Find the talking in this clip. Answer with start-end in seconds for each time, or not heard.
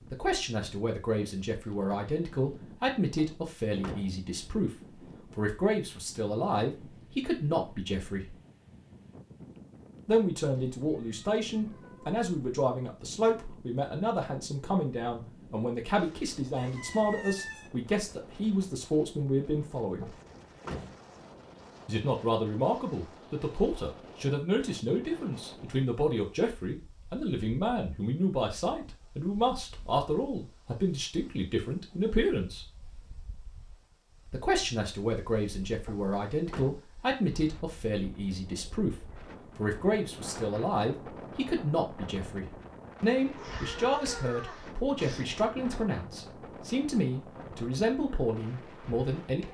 0.1-4.7, 5.3-8.3, 10.1-20.1, 21.9-32.6, 34.2-39.0, 39.5-49.4.